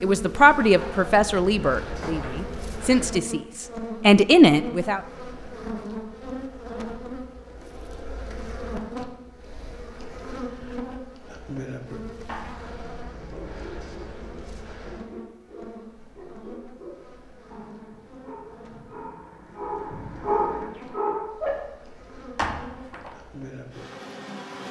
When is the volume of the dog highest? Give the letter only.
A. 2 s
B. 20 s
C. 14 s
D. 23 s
B.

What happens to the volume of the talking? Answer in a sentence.
The volume of the talking goes down, then up.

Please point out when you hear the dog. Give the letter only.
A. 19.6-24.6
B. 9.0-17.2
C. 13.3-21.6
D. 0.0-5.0
C.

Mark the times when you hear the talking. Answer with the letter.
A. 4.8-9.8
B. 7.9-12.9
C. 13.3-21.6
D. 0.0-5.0
D.